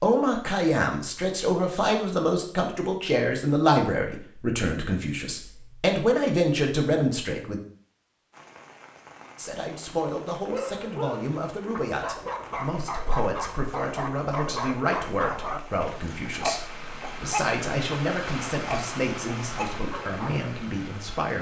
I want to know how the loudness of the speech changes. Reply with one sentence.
The loudness of the speech goes down.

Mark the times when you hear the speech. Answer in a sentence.
You can hear the speech from 0.0 to 7.6 s and from 9.3 to 21.3 s.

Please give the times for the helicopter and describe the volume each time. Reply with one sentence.
The helicopter can't be heard in this clip.